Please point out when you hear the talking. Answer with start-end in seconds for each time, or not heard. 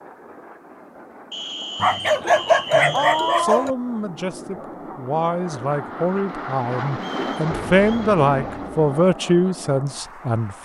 3.4-10.5.